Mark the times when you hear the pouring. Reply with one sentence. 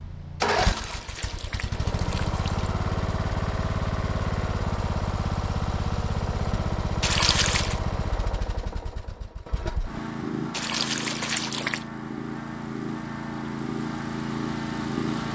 The pouring can be heard from 0.7 to 2.7 s, from 7.0 to 7.8 s and from 10.5 to 11.8 s.